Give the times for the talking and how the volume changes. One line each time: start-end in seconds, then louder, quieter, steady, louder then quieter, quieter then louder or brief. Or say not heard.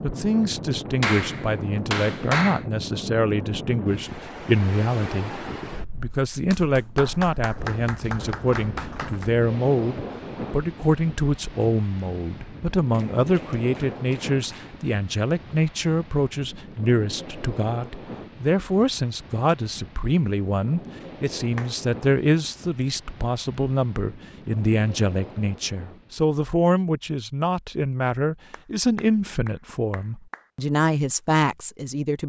0.0-32.2 steady.